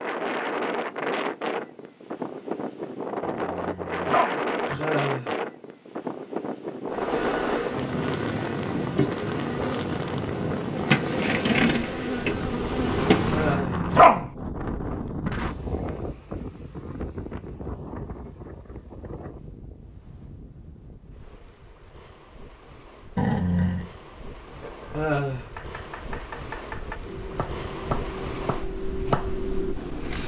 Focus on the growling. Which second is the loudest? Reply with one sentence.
The loudest moment of the growling is at 14 seconds.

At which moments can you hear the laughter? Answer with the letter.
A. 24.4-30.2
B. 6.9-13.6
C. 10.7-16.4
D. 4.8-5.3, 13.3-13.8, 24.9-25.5
D.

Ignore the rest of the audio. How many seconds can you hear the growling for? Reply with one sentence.
You can hear the growling for 3 seconds altogether.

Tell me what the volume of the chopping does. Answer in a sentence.
The volume of the chopping goes up.